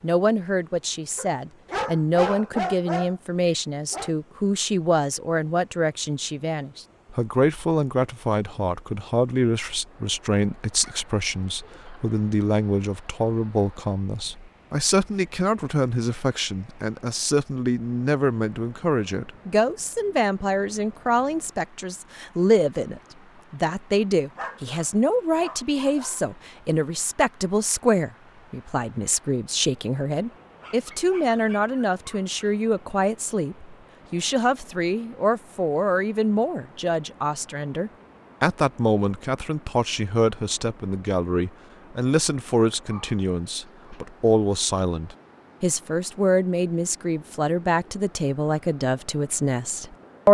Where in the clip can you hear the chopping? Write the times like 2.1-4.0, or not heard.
not heard.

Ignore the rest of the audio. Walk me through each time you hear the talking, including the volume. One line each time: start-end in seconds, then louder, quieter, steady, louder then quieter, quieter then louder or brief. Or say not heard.
0.0-50.2 steady.